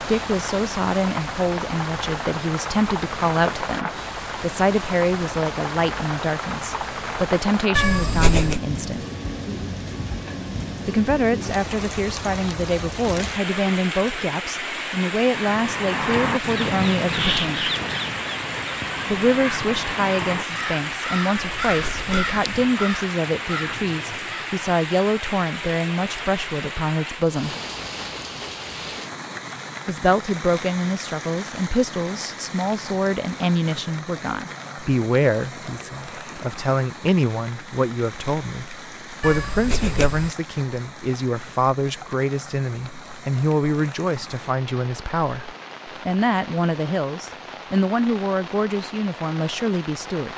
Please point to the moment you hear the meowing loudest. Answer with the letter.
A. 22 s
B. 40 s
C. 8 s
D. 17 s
C.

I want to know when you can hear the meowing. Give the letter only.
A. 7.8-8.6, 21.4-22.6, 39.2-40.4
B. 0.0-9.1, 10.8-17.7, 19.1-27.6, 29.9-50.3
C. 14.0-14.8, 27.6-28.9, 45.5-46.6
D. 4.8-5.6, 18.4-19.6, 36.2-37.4
A.